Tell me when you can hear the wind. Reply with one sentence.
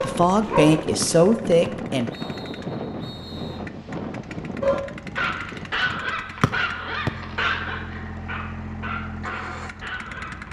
The wind can be heard from 0.0 to 6.0 s.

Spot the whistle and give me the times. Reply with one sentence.
The whistle can be heard from 1.0 to 3.6 s and from 6.4 to 7.1 s.